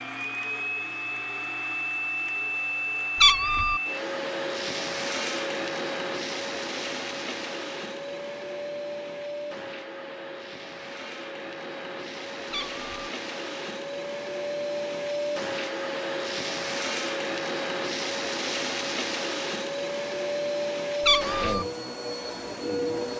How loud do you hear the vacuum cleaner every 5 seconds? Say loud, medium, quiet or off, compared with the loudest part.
loud, loud, medium, loud, loud.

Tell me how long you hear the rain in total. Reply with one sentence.
You can't hear the rain here.